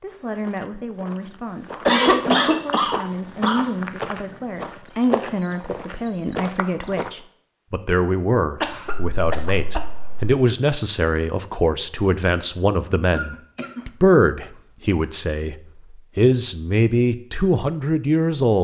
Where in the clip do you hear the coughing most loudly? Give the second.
2 s.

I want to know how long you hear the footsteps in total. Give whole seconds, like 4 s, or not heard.
7 s.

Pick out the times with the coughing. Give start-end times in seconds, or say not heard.
1.9-3.7, 8.6-10.3, 13.1-14.9.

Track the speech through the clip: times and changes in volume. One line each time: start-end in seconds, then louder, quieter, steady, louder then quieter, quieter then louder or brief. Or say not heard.
0.0-15.6 louder
16.1-18.5 brief.